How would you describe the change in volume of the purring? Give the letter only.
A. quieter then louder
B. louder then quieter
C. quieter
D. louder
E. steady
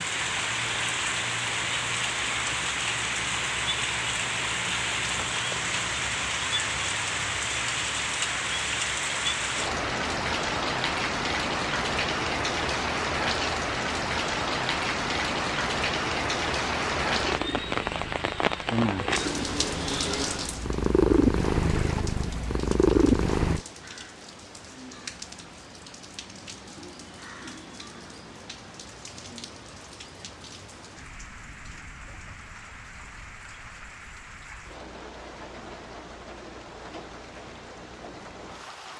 D.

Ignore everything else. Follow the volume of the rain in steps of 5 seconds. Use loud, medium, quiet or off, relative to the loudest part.
loud, loud, loud, loud, medium, quiet, quiet, quiet.